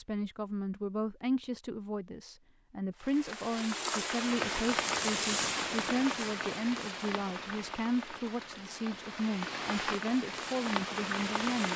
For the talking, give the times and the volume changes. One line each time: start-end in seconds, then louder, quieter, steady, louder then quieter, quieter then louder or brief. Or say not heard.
0.0-11.7 steady.